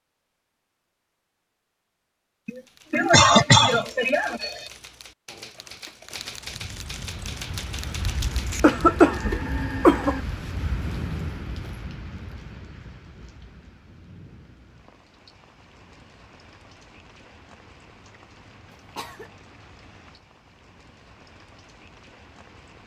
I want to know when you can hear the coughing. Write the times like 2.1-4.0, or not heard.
2.5-4.6, 8.2-10.2, 18.7-19.3.